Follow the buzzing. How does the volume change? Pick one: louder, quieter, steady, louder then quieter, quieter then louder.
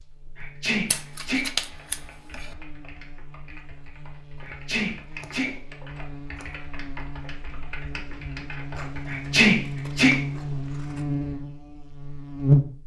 louder.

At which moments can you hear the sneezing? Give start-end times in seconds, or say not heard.
0.3-1.4, 4.4-5.5, 9.1-10.1.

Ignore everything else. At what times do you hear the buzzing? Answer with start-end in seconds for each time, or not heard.
0.0-12.8.